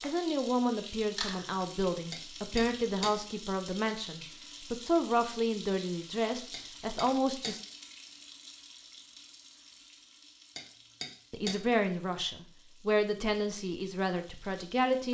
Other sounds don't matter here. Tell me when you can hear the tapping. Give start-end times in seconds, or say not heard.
2.1-3.1, 6.5-7.5, 10.6-11.6.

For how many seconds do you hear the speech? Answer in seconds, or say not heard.
11 s.